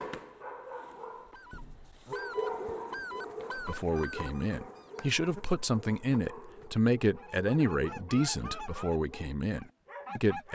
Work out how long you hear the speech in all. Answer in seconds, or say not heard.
7 s.